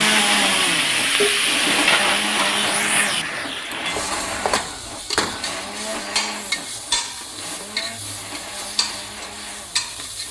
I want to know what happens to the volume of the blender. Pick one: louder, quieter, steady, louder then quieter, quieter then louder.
quieter.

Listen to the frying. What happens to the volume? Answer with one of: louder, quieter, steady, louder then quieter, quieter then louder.
quieter.